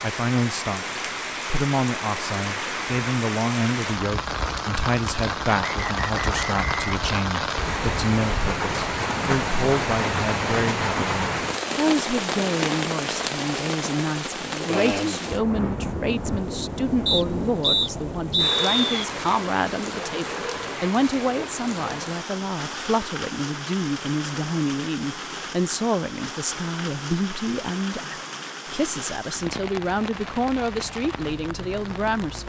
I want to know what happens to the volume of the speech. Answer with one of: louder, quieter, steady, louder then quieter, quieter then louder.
steady.